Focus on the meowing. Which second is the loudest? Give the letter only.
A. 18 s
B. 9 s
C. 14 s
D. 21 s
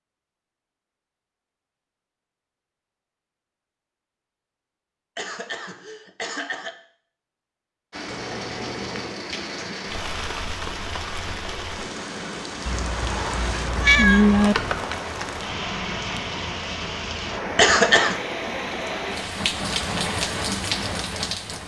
C.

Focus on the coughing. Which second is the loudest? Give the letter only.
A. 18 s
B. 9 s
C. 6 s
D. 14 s
A.